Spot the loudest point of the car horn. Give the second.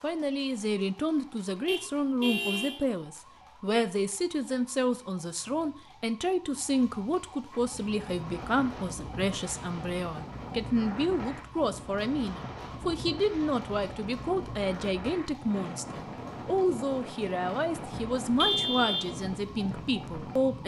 19 s.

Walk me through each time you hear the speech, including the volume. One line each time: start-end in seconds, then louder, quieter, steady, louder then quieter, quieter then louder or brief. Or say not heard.
0.0-20.6 steady.